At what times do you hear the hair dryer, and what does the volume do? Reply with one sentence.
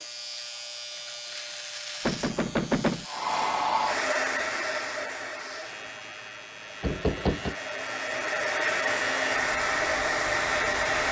You can hear the hair dryer from 3.0 to 11.0 s, getting quieter then louder.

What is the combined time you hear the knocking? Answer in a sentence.
The knocking can be heard for 2 seconds in total.